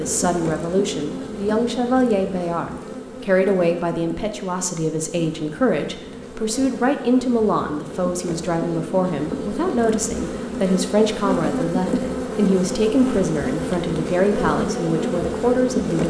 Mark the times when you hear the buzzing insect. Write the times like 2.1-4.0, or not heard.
0.0-16.0.